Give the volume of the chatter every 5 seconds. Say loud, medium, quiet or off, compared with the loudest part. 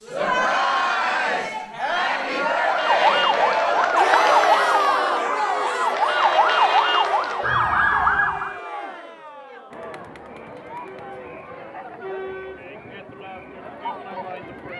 loud, medium, quiet.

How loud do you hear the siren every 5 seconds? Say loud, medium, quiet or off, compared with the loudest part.
loud, loud, off.